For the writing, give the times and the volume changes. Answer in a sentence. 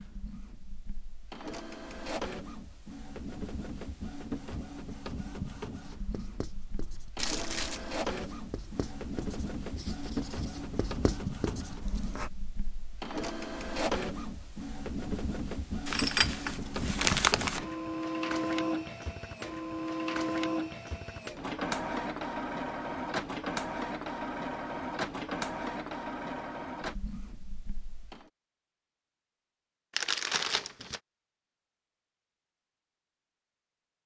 You can hear the writing from 6.0 to 12.3 s, getting louder.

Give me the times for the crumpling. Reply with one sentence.
You can hear the crumpling from 7.2 to 7.8 s, from 15.8 to 17.6 s and from 29.9 to 31.0 s.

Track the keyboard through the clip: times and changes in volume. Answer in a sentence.
The keyboard can't be heard in this clip.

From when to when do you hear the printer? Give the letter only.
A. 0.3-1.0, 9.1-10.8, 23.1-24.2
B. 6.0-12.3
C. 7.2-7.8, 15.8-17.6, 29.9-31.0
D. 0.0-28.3
D.